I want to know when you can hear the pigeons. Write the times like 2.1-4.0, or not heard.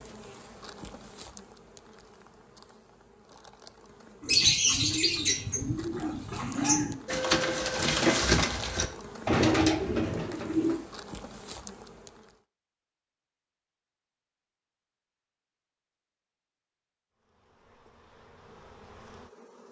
4.2-10.8.